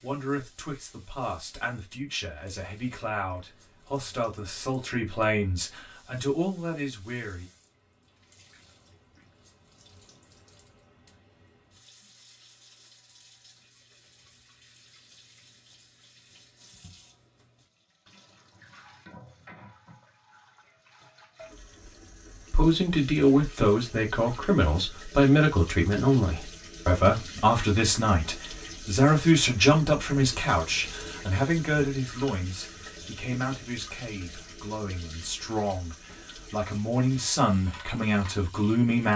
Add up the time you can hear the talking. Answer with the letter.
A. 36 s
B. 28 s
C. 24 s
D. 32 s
C.